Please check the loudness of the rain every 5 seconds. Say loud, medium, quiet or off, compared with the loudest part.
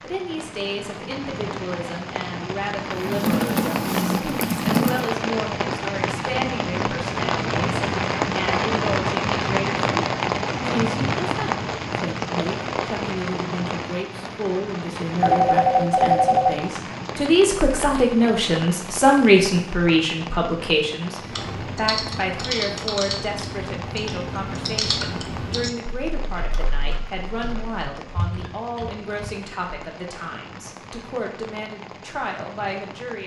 medium, loud, loud, medium, quiet, quiet, quiet.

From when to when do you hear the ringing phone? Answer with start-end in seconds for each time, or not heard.
15.2-16.6.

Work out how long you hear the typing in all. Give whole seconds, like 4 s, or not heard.
10 s.